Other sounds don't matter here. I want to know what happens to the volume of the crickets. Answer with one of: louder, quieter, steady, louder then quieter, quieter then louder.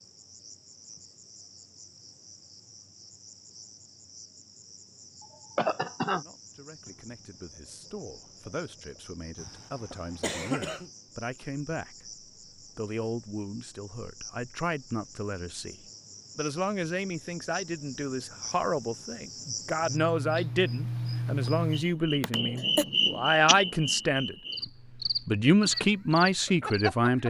louder.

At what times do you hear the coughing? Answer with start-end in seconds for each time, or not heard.
5.2-6.2, 9.4-10.9, 22.2-22.9.